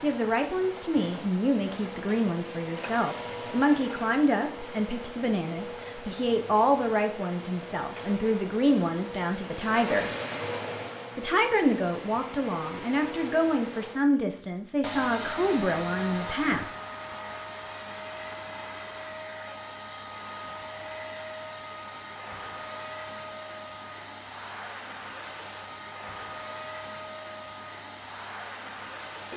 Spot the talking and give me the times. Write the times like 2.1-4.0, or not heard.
0.0-10.1, 11.2-16.7.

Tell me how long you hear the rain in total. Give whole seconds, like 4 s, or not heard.
not heard.